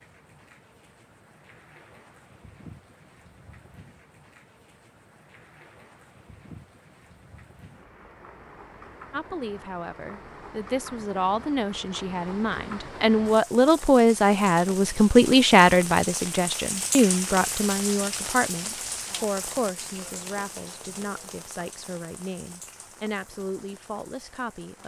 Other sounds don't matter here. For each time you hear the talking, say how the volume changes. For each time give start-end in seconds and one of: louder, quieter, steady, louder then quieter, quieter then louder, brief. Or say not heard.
9.1-24.8 louder then quieter.